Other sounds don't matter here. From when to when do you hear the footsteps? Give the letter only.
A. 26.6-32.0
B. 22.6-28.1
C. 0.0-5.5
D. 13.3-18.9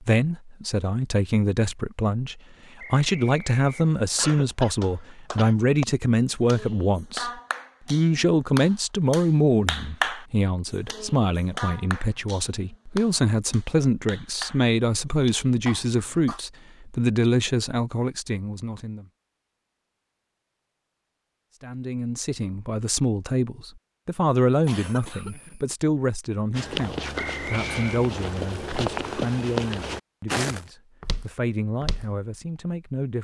A.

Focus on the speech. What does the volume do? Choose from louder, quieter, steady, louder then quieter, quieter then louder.
quieter.